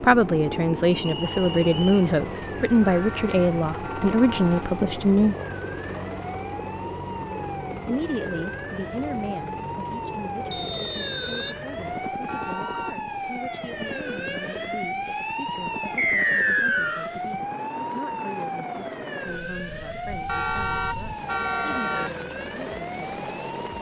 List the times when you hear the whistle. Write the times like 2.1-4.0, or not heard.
0.9-1.9, 10.5-11.6, 15.9-17.1.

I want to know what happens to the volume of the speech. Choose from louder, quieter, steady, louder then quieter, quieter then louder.
quieter.